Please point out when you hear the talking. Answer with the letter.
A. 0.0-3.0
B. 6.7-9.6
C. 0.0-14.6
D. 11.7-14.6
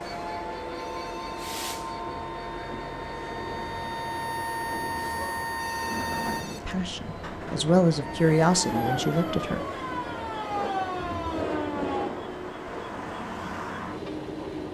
B.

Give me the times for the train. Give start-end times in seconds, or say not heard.
0.0-14.6.